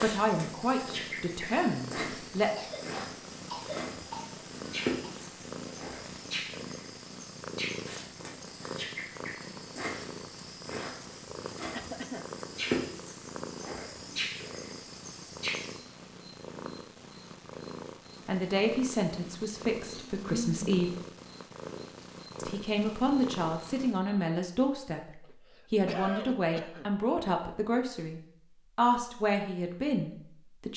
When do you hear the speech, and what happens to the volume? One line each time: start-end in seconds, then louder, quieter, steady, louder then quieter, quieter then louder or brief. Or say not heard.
0.0-2.5 brief
18.2-20.9 brief
22.4-30.7 steady.